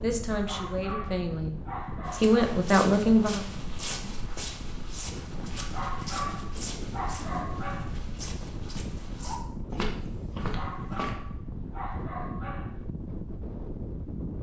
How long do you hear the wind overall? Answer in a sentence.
You can hear the wind for 14 seconds altogether.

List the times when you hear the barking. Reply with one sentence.
The barking can be heard from 0.3 to 2.4 s, from 5.5 to 8.1 s and from 10.3 to 12.8 s.